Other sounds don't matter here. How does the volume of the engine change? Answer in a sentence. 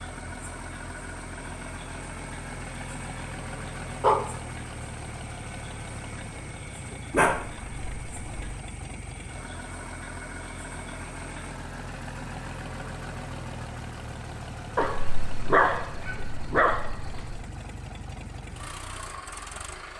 The loudness of the engine stays about the same.